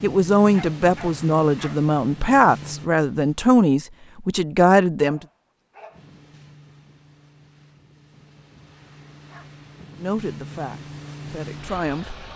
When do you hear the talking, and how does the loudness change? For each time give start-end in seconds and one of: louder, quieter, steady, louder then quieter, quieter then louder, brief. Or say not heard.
0.0-5.2 steady
10.0-12.2 brief.